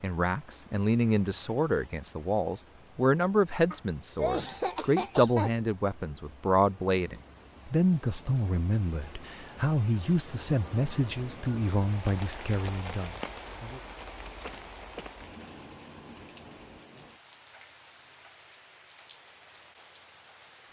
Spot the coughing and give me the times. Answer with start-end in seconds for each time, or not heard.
3.7-5.5, 14.3-15.1.